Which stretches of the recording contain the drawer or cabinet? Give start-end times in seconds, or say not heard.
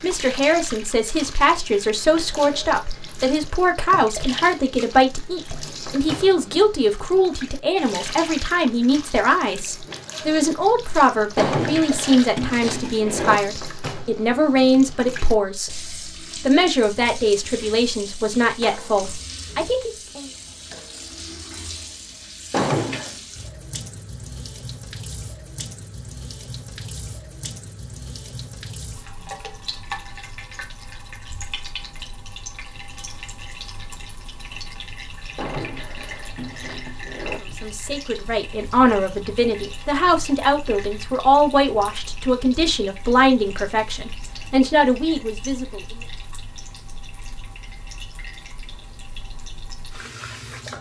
11.3-13.4, 22.5-23.1, 35.4-37.4.